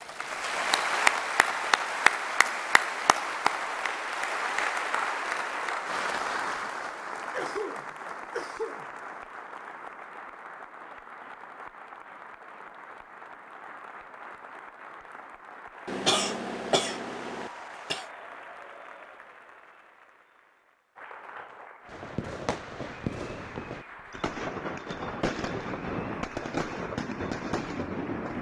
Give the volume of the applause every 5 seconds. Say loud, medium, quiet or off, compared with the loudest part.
loud, medium, quiet, quiet, quiet, quiet.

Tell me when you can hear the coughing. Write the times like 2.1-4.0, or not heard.
7.3-8.8, 15.8-18.1.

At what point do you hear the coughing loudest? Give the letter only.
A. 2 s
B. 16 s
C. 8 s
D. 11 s
B.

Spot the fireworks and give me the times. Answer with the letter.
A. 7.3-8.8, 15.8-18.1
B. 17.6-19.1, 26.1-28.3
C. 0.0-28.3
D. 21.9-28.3
D.